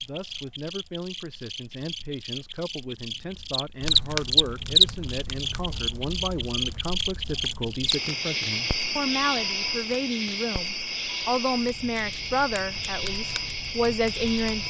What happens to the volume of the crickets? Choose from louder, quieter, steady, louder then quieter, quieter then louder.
louder then quieter.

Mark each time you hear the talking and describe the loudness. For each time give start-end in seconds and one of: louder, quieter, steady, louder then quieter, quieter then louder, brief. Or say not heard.
0.0-14.6 louder.